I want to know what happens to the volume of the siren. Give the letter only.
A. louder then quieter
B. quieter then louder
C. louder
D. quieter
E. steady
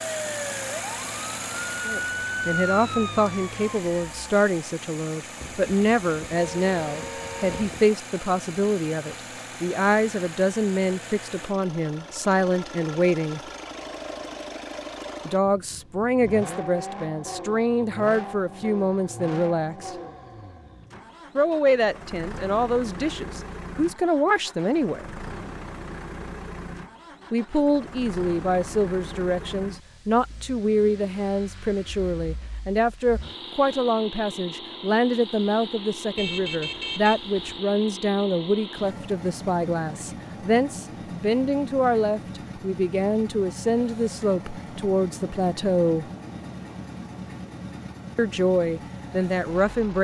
A.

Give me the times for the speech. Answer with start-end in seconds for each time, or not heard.
1.9-13.4, 15.2-19.9, 21.4-25.1, 27.3-46.0, 48.1-49.9.